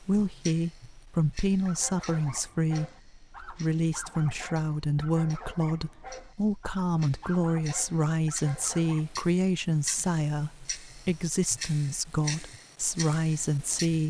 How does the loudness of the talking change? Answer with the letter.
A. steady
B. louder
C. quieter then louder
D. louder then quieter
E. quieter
A.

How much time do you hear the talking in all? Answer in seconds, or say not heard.
14 s.